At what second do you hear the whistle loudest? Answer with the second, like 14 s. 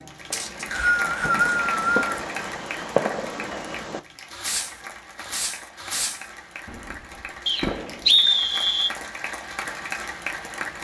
8 s.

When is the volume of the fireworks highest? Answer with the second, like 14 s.
3 s.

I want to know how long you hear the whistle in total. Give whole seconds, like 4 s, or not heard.
3 s.